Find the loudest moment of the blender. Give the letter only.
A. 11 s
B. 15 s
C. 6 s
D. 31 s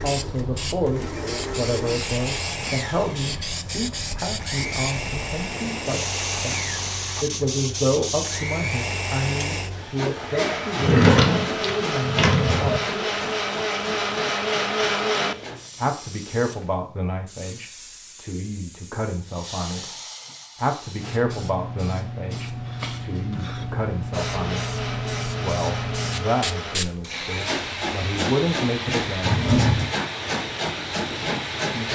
B.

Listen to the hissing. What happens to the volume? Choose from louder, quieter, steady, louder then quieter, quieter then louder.
quieter then louder.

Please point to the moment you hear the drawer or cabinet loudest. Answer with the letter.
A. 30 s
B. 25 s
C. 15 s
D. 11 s
D.